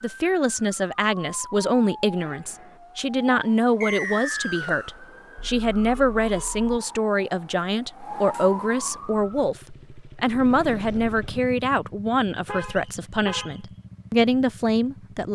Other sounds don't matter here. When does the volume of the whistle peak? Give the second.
4 s.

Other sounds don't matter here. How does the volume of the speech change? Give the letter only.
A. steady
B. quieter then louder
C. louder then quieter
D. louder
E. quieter
A.